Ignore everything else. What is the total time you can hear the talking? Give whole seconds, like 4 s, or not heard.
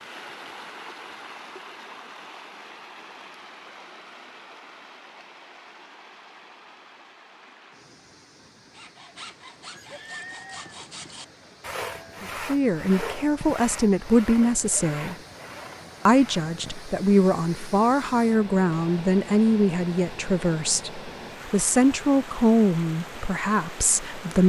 11 s.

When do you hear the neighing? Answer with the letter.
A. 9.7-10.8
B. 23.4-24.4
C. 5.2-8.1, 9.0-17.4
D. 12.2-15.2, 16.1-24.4
A.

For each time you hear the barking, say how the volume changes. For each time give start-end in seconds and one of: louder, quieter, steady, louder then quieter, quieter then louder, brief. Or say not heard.
not heard.